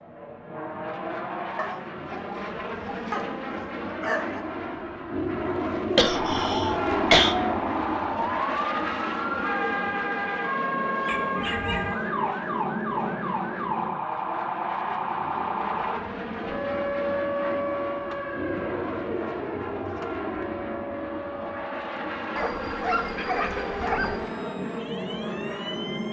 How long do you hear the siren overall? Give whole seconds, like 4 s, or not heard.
20 s.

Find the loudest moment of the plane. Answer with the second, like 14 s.
7 s.